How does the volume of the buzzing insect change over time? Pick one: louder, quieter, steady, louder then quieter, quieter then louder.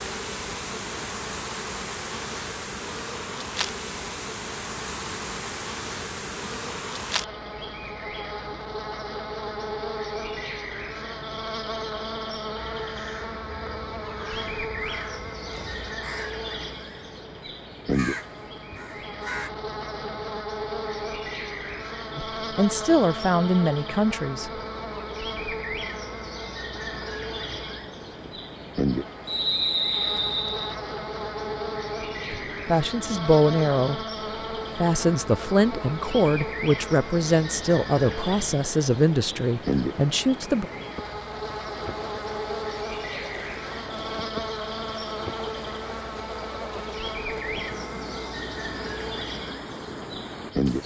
steady.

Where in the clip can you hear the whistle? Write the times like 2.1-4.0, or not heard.
29.2-30.8.